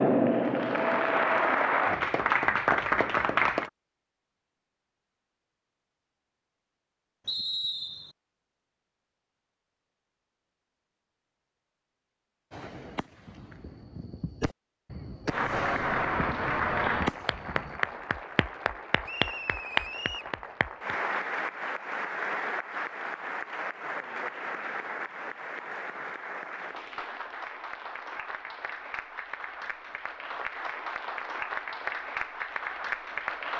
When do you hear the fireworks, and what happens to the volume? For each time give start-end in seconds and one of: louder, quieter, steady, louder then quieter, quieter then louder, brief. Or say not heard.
12.5-17.8 louder.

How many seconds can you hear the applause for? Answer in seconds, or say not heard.
22 s.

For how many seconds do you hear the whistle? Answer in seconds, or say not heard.
2 s.